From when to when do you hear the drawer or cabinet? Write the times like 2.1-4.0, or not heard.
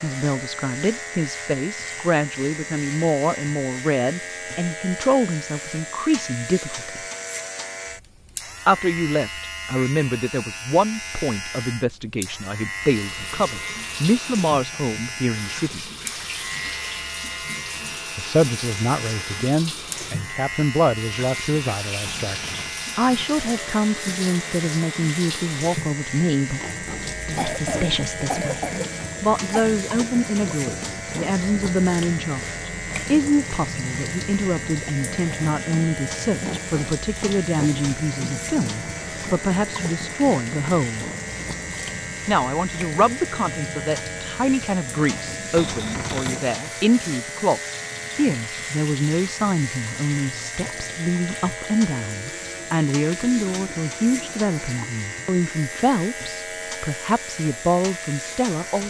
22.1-22.7, 45.5-46.4.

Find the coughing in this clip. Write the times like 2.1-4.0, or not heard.
27.3-29.7.